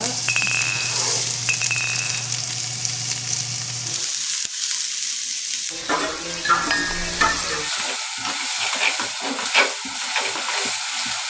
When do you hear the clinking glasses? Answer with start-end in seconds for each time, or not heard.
0.2-2.4, 6.5-7.0.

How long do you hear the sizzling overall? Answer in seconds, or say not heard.
11 s.